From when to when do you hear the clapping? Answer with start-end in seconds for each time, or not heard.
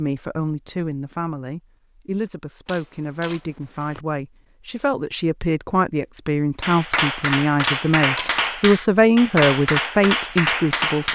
6.6-11.0.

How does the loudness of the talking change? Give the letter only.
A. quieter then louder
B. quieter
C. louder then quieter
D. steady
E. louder
E.